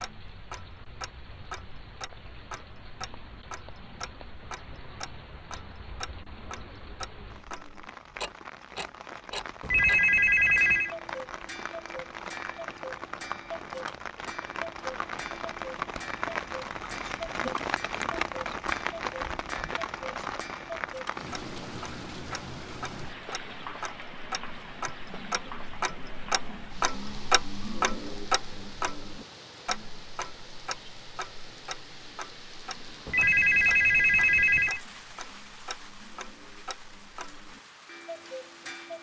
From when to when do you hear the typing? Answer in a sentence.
You can't hear the typing here.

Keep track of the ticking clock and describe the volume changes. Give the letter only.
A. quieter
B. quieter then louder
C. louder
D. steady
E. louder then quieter
E.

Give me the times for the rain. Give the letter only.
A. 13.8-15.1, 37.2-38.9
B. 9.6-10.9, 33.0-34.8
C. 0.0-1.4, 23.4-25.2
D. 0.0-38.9
D.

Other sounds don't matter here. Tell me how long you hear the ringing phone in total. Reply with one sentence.
The ringing phone can be heard for 3 seconds in total.